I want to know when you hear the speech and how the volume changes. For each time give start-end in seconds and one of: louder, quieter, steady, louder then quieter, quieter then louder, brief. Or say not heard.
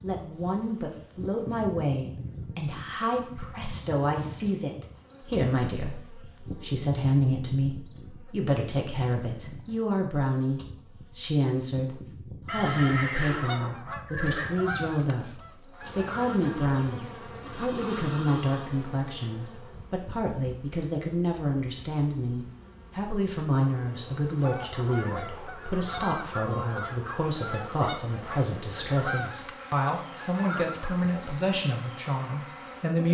0.0-33.1 steady.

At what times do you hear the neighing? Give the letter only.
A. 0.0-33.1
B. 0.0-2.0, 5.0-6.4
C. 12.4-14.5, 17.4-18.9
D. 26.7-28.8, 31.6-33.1
C.